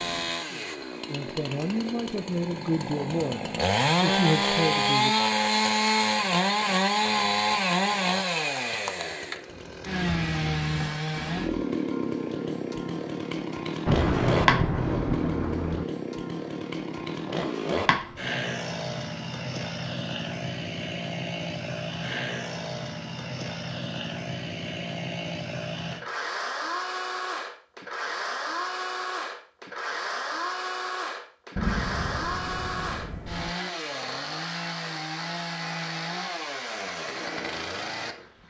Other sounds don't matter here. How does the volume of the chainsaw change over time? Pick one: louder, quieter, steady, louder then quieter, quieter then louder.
quieter.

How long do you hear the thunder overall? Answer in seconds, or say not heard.
4 s.